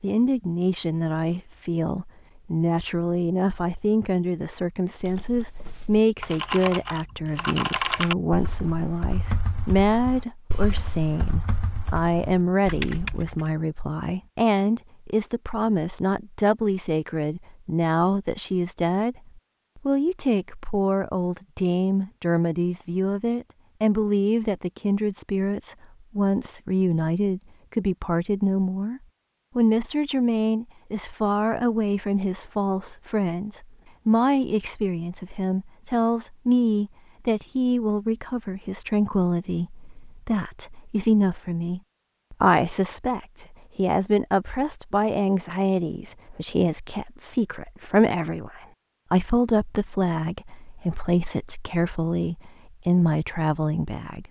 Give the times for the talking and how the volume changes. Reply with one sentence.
The talking can be heard from 0.0 to 54.2 s, at a steady volume.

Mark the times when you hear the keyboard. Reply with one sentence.
You can hear the keyboard from 5.0 to 13.4 s.